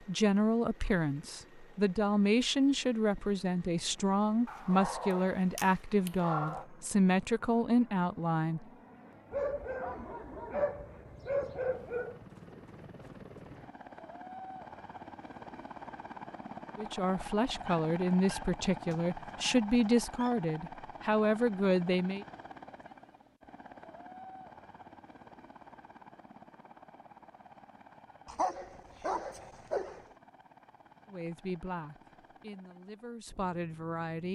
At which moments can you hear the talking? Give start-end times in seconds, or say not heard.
0.1-8.7, 16.8-22.2, 31.1-34.3.